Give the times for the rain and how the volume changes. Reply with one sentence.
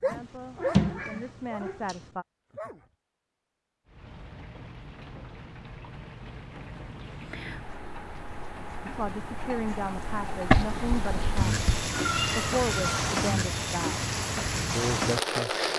The rain can be heard from 3.9 to 15.7 s, getting louder.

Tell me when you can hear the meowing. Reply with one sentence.
You can hear the meowing from 0.1 to 2.1 s and from 10.5 to 13.1 s.